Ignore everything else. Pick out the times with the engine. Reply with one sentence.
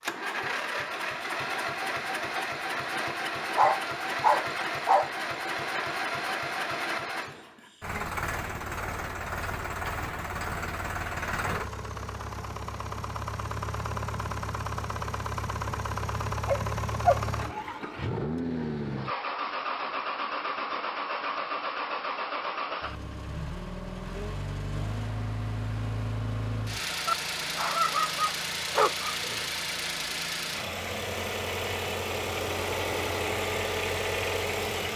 The engine can be heard from 0.0 to 34.9 s.